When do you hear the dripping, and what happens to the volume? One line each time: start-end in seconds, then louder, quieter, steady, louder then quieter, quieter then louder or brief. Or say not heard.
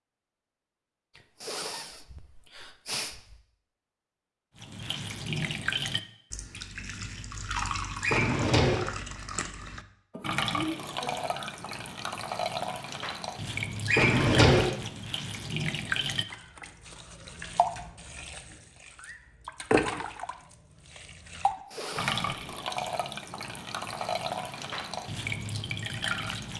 4.5-26.5 steady.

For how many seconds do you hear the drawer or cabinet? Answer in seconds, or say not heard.
2 s.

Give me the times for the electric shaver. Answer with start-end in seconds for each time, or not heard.
not heard.